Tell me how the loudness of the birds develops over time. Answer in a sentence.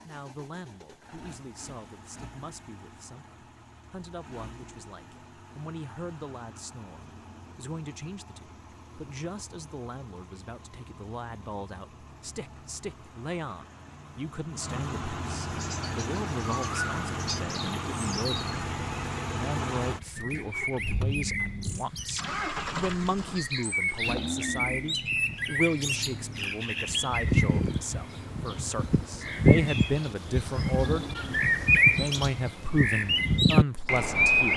The loudness of the birds goes up.